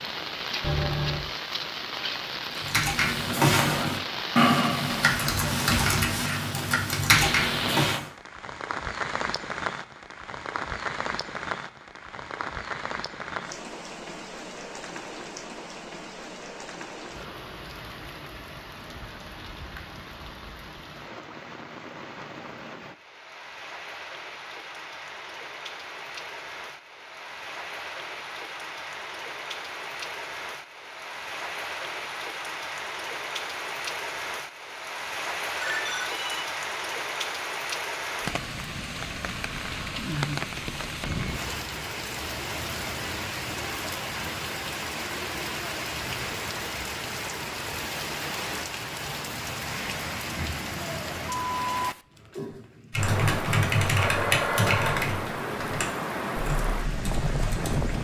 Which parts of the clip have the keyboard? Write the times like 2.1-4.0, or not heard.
2.5-8.1, 52.9-57.9.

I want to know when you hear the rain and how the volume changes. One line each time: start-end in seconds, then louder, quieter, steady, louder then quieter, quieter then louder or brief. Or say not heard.
0.0-57.9 quieter then louder.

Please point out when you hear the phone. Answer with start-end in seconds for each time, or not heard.
0.6-1.3, 35.6-36.5, 54.0-55.0.